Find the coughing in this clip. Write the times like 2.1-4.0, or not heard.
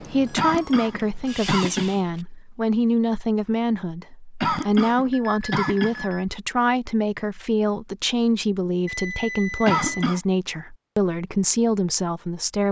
0.3-2.0, 4.4-6.0, 9.7-10.2.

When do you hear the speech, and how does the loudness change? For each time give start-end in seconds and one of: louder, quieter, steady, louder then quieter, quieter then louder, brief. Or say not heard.
0.0-12.6 steady.